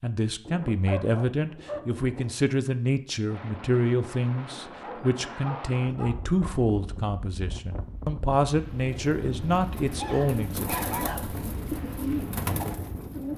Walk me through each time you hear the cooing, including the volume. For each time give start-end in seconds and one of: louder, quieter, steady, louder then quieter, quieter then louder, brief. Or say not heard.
8.8-13.3 louder.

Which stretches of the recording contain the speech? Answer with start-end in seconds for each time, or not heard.
0.0-10.7.